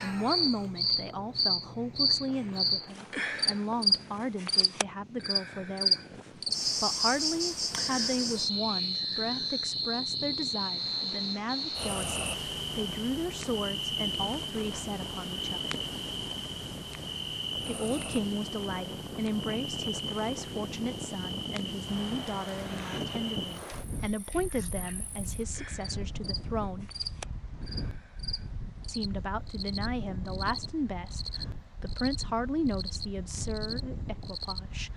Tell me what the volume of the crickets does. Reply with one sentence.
The volume of the crickets goes down.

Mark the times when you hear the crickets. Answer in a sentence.
The crickets can be heard from 0.0 to 34.6 s.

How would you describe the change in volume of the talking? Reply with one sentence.
The volume of the talking stays about the same.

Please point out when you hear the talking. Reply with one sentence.
You can hear the talking from 0.0 to 15.7 s, from 17.6 to 26.9 s and from 28.9 to 34.9 s.